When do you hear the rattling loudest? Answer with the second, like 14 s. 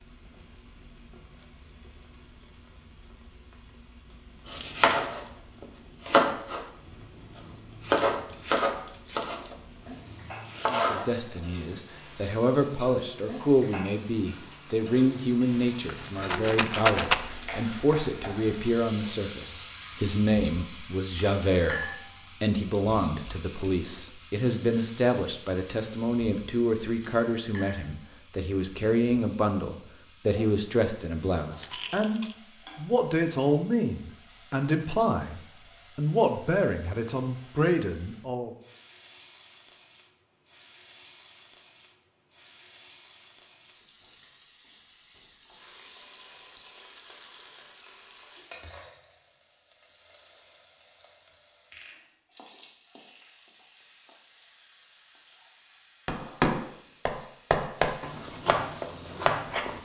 17 s.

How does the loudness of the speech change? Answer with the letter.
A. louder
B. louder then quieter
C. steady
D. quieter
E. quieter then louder
C.